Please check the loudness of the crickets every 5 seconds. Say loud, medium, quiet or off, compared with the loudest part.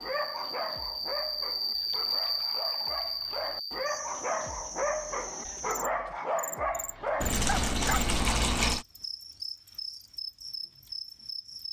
loud, medium, medium.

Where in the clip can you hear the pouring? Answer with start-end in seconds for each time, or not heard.
1.7-3.5, 7.2-8.8.